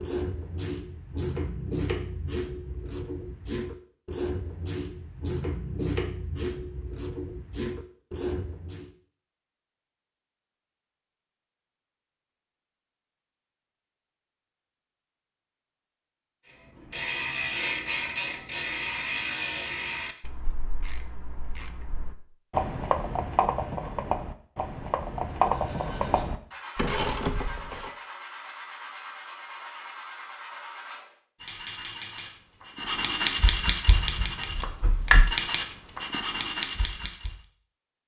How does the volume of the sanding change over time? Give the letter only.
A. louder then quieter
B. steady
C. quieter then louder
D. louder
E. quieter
D.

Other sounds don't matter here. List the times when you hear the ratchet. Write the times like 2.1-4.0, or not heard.
0.0-8.9, 16.9-27.9.